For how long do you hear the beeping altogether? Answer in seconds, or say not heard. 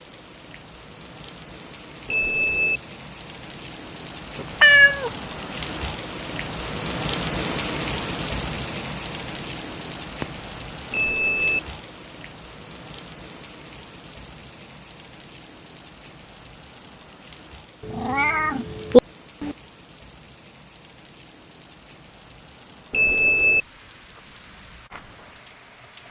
2 s.